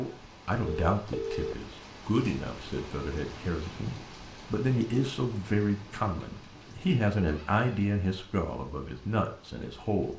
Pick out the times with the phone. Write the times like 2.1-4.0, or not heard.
0.7-1.8.